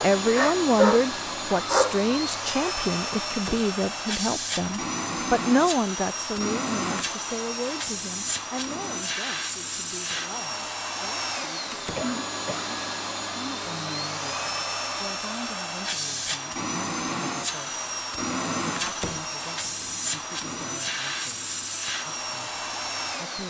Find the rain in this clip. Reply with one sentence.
You can't hear the rain here.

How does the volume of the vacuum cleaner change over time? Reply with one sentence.
The loudness of the vacuum cleaner stays about the same.